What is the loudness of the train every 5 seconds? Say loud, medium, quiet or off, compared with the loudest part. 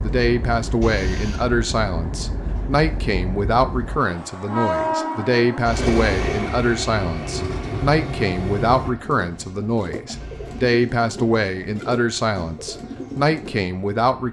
loud, loud, quiet.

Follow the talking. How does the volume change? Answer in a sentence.
The volume of the talking stays about the same.